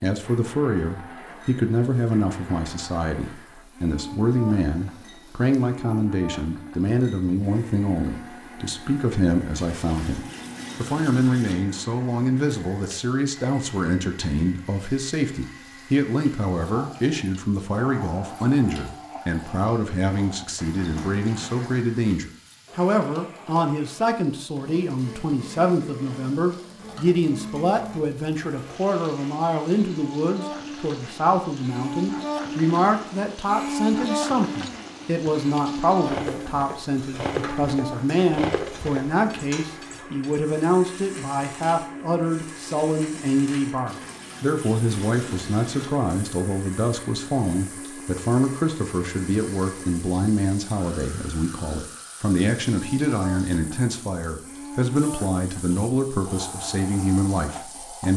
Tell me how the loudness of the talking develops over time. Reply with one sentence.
The loudness of the talking stays about the same.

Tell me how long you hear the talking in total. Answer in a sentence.
The talking can be heard for 58 seconds in total.